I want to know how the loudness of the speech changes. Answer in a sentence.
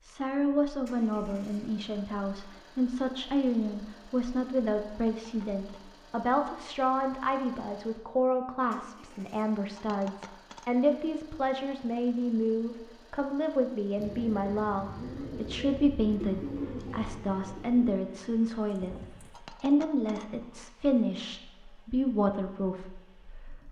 The loudness of the speech stays about the same.